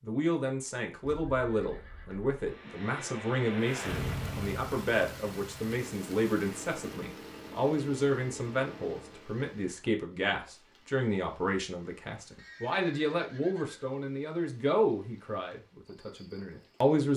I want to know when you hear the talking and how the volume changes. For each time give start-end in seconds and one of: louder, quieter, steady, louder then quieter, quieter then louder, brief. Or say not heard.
0.0-17.1 steady.